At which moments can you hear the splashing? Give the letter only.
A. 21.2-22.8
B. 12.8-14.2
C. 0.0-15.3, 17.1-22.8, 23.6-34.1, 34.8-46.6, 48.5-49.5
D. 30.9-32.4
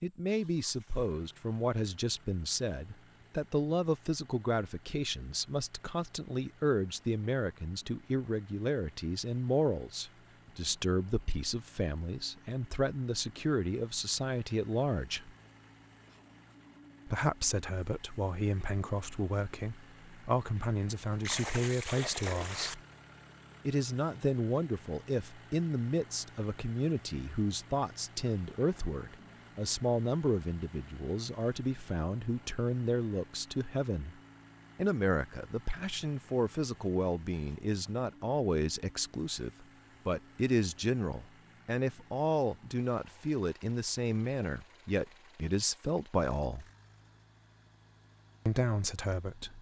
A.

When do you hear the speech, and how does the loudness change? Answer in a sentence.
You can hear the speech from 0.0 to 15.3 s, at a steady volume; from 17.1 to 22.8 s, at a steady volume; from 23.6 to 34.1 s, at a steady volume; from 34.8 to 46.6 s, at a steady volume; and briefly from 48.5 to 49.5 s.